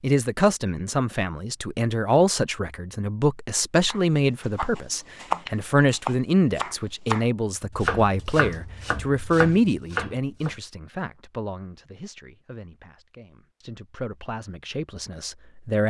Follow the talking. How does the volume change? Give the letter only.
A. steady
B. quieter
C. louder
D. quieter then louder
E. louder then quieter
B.